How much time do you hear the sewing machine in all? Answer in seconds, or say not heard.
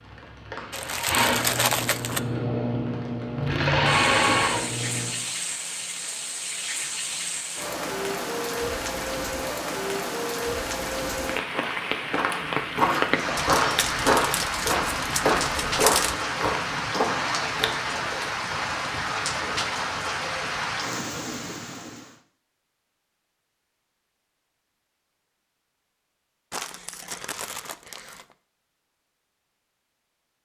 5 s.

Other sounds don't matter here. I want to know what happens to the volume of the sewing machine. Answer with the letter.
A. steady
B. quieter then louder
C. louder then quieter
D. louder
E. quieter
D.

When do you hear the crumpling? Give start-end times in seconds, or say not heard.
0.7-2.2, 13.3-16.1, 26.5-28.4.